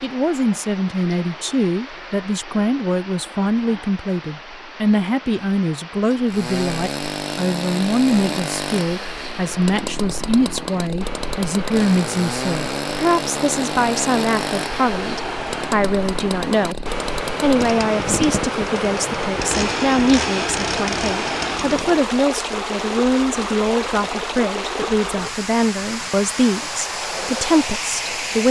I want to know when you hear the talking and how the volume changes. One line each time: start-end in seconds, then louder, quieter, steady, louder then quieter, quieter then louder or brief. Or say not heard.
0.0-16.8 steady
17.4-28.4 steady.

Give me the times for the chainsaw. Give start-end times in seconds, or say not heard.
6.2-22.1.